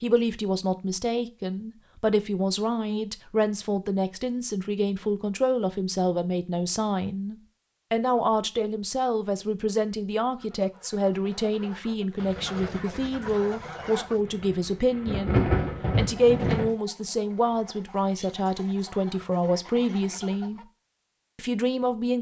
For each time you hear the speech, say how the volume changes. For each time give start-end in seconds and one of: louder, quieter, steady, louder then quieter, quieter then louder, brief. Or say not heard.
0.0-20.6 steady
21.4-22.1 brief.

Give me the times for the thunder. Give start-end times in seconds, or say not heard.
12.2-16.7.